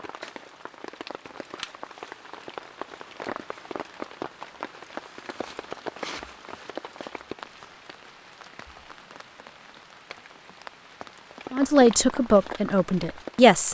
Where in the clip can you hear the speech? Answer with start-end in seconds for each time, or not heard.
11.5-13.6.